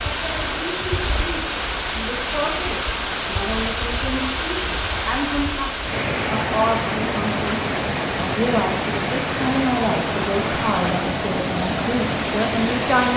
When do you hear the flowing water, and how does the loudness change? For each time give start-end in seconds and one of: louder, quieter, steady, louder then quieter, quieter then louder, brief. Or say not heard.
0.0-13.1 steady.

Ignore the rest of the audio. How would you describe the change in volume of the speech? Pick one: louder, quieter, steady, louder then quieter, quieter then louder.
louder.